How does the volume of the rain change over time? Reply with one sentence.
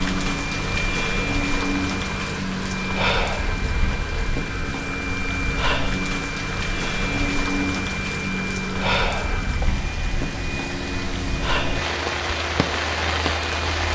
The volume of the rain stays about the same.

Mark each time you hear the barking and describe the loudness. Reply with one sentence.
The barking can't be heard in this clip.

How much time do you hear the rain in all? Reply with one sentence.
The rain can be heard for 14 seconds in total.